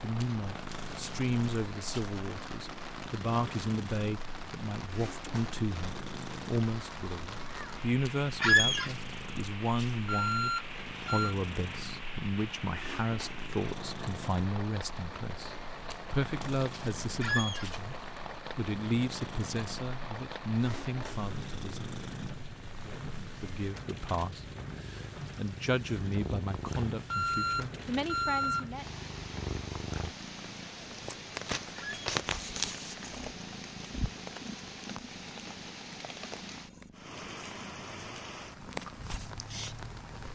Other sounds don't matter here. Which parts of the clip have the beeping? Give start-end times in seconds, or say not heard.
10.1-11.3, 27.1-28.6.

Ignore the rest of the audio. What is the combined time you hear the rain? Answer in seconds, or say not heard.
40 s.